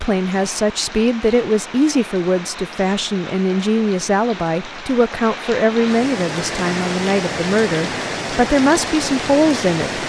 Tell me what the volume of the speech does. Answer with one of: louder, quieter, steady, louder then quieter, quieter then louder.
steady.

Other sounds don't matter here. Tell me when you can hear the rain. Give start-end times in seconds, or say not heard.
0.0-10.0.